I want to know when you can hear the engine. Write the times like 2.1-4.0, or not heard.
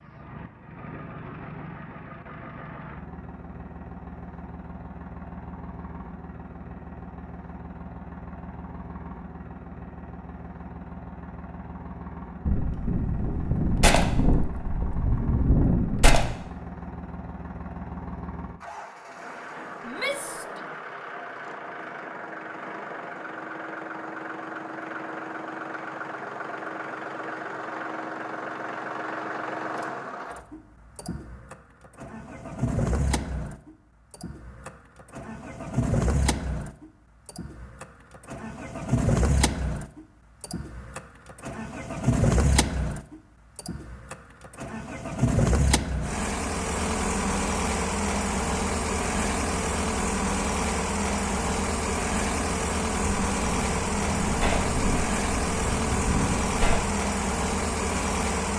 0.0-58.5.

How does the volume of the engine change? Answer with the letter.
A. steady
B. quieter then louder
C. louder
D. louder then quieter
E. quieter
C.